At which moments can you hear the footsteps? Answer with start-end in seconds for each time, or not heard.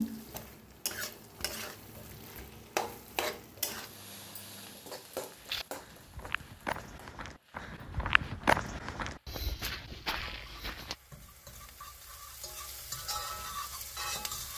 5.3-10.9.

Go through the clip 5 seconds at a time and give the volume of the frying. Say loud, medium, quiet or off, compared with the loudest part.
loud, medium, loud.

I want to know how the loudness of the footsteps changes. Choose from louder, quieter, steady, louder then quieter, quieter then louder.
louder then quieter.